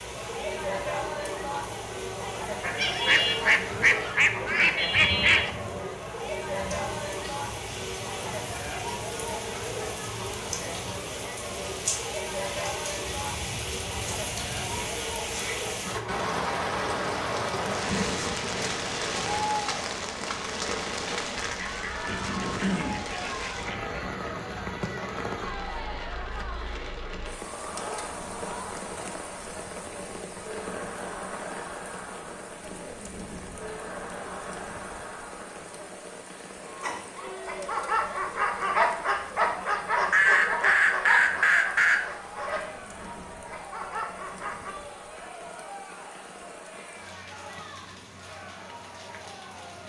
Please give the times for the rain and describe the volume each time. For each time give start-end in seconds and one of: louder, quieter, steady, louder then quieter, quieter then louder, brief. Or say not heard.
0.0-49.8 louder then quieter.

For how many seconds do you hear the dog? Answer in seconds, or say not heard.
8 s.